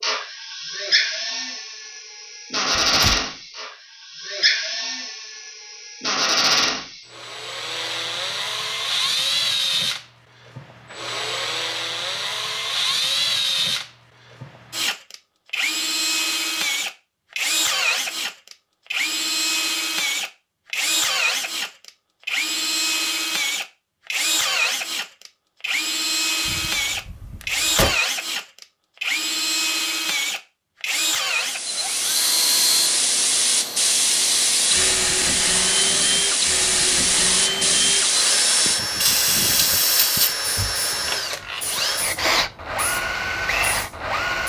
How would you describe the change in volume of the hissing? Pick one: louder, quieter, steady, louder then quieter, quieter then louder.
quieter.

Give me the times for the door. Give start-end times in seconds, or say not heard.
2.8-3.2, 26.4-27.9, 40.5-41.8.